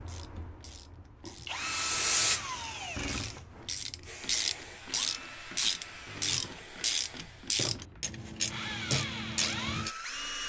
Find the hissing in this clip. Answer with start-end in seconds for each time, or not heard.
1.6-7.6.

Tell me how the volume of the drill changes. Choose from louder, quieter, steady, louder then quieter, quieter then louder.
quieter then louder.